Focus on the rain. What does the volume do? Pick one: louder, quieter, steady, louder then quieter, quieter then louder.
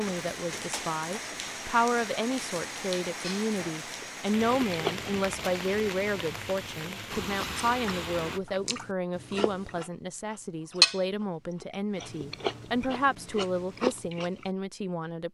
steady.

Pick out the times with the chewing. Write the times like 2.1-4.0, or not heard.
3.2-5.1, 7.5-14.5.